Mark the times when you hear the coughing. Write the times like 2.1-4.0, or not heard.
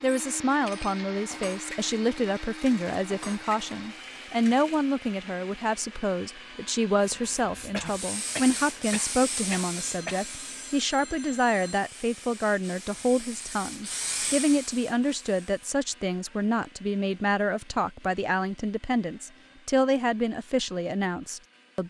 7.7-10.2.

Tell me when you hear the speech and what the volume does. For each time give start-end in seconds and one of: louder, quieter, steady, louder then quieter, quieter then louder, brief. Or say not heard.
0.0-21.8 steady.